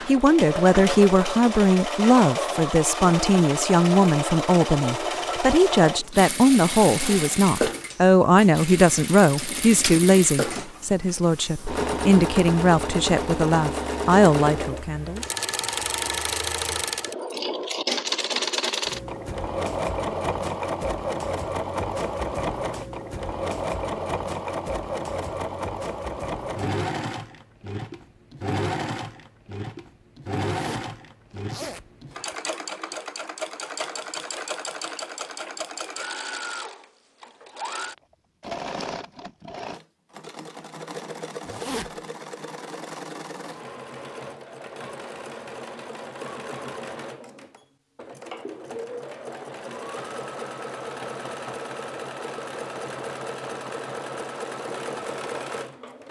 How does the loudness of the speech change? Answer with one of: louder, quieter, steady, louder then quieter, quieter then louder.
steady.